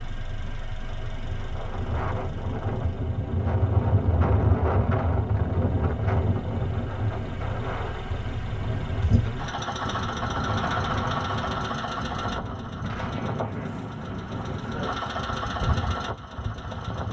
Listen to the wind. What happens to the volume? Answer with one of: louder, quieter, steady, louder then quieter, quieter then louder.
louder then quieter.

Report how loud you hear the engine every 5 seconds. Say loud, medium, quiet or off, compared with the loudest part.
quiet, medium, loud, loud.